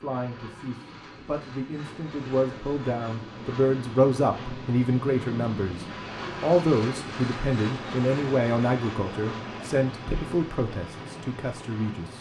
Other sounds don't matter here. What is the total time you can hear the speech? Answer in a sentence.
You can hear the speech for 12 seconds altogether.